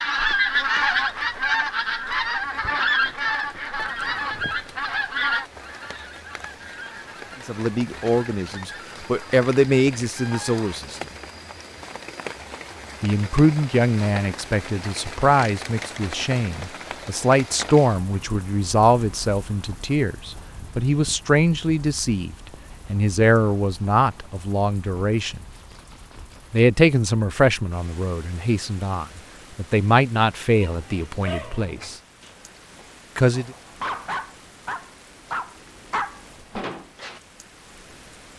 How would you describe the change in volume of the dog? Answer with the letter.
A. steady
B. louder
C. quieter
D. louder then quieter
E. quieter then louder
E.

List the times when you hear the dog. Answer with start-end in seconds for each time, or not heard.
30.6-37.2.